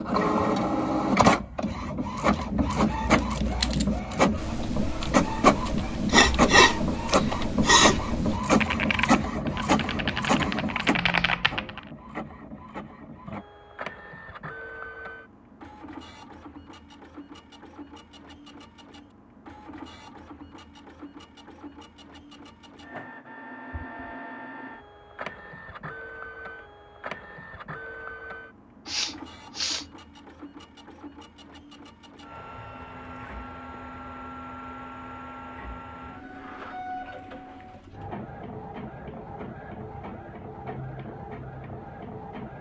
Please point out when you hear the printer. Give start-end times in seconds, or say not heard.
0.0-42.5.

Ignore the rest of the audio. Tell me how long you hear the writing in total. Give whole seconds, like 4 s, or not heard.
not heard.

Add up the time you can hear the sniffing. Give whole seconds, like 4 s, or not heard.
3 s.